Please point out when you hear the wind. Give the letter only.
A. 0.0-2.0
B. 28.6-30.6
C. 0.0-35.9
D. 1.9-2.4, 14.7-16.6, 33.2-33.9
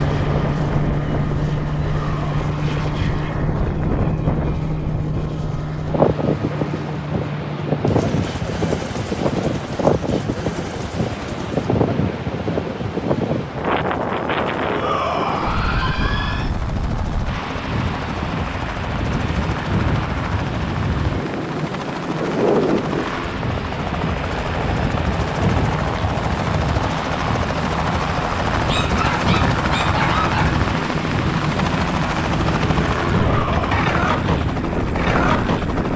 C.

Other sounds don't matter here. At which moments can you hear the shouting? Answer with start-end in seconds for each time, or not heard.
1.9-2.4, 14.7-16.6, 33.2-33.9.